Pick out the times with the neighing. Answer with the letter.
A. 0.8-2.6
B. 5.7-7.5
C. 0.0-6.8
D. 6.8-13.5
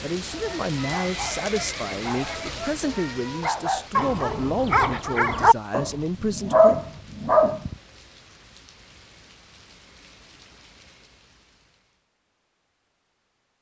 A.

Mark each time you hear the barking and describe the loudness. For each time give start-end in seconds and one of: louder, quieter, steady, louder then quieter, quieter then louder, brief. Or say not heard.
0.2-7.8 louder.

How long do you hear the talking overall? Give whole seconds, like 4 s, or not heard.
7 s.